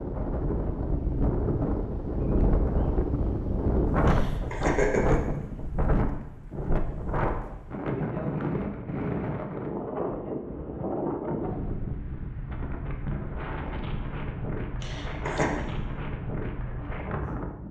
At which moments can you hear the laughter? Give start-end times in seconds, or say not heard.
4.0-5.3, 14.8-15.6.